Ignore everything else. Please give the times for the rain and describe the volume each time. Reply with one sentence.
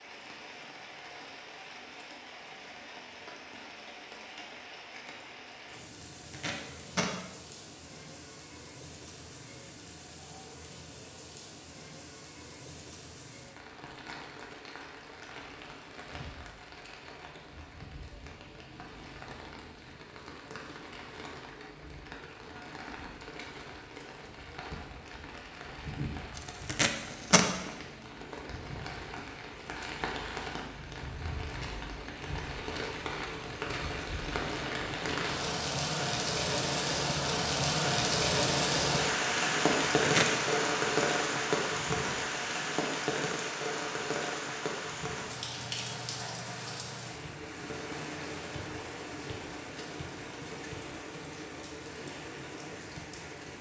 You can hear the rain from 0.0 to 53.5 s, getting louder then quieter.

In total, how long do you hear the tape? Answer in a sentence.
The tape can be heard for 3 seconds in total.